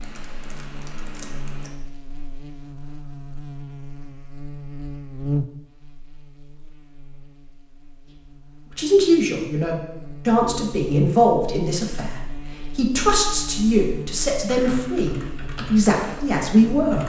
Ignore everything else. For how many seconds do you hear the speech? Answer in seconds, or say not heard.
8 s.